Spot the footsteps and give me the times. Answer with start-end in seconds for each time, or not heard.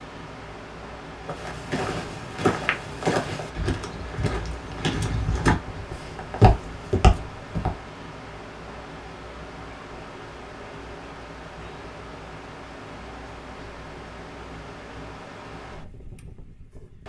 1.2-7.8.